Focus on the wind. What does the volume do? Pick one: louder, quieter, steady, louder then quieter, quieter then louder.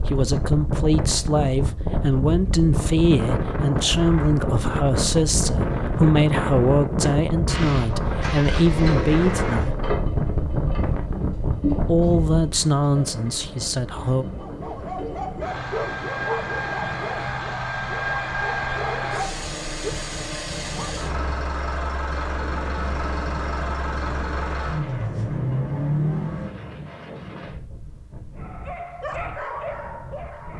quieter.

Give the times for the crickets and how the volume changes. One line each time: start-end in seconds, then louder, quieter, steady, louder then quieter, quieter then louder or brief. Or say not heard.
not heard.